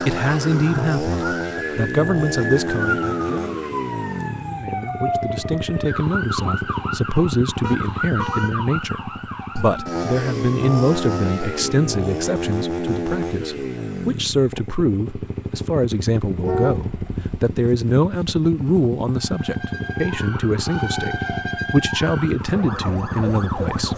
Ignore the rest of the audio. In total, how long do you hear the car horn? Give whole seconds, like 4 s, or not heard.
2 s.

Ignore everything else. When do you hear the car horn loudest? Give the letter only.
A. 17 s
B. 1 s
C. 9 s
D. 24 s
A.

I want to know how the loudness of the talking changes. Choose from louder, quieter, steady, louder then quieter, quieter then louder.
steady.